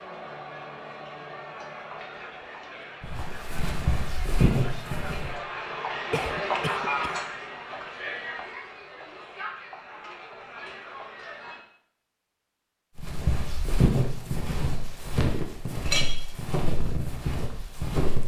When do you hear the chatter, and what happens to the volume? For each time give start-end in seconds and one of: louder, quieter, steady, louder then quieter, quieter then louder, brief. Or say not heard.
0.0-11.7 louder then quieter.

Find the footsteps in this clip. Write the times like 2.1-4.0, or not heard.
3.0-5.4, 12.9-18.2.